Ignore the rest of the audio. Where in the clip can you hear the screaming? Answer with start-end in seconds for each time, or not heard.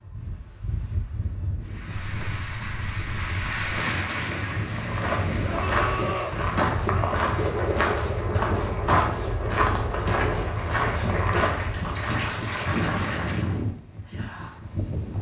5.5-6.3.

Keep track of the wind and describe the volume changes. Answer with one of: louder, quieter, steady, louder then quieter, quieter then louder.
louder.